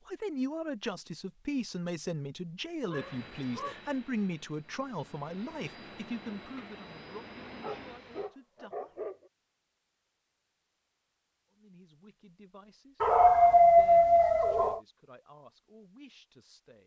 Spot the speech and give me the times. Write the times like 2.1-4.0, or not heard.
0.1-9.1, 11.5-16.8.